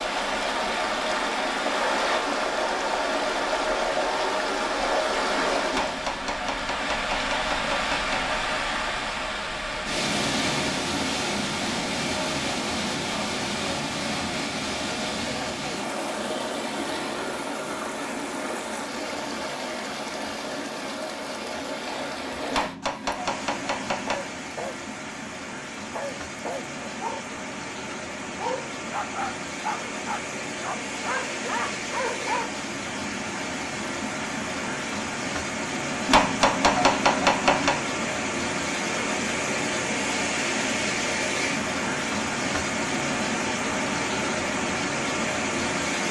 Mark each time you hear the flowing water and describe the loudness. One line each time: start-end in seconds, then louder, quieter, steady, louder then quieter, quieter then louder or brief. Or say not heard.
0.0-46.0 quieter then louder.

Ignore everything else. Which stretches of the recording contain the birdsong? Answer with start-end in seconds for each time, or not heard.
not heard.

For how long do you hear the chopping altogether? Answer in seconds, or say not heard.
6 s.